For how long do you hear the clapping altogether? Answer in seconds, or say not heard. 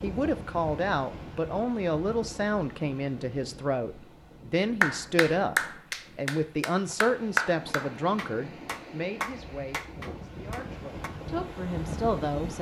6 s.